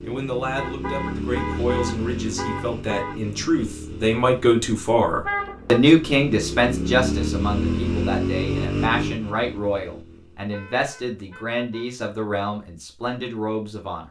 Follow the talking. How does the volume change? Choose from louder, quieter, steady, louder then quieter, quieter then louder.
louder then quieter.